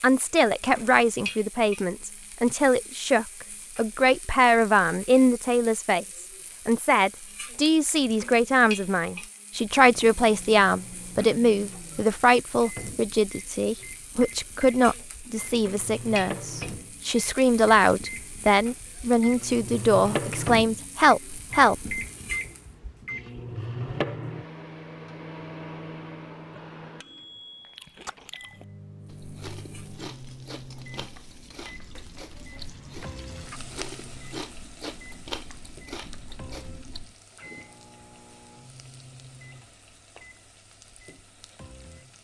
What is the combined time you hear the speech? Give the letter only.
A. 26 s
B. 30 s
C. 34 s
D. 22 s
D.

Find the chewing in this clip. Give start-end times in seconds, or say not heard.
27.6-37.1.